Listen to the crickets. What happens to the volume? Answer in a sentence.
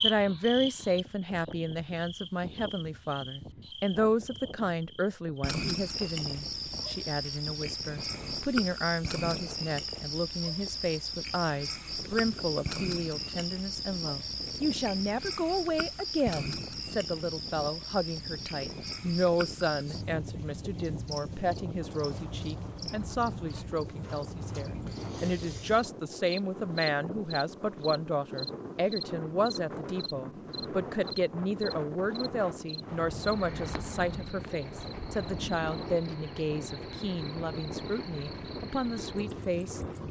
The volume of the crickets goes down.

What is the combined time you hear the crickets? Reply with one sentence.
The crickets can be heard for 40 seconds in total.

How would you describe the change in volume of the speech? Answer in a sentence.
The loudness of the speech stays about the same.